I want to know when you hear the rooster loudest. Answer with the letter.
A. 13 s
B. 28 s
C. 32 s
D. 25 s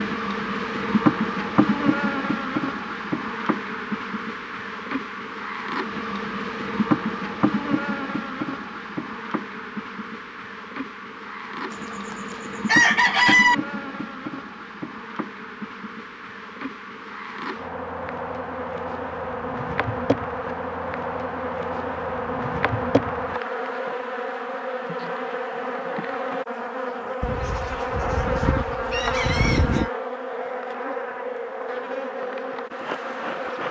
A.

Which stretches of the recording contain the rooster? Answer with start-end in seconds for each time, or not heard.
11.7-13.6, 27.2-29.9.